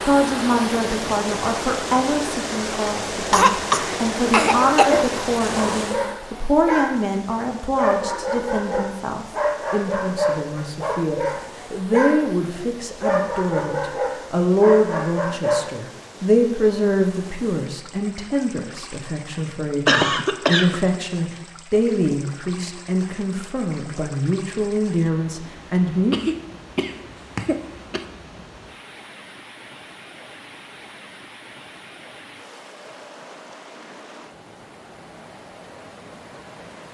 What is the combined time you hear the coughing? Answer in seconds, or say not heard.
5 s.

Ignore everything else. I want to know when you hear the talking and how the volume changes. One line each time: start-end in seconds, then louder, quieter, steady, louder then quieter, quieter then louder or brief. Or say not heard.
0.0-26.1 steady.